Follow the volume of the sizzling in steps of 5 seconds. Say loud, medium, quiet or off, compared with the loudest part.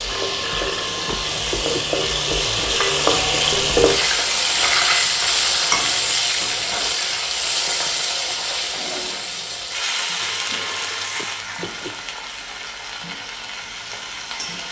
loud, loud, medium.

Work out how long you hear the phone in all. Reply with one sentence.
You can hear the phone for 4 seconds altogether.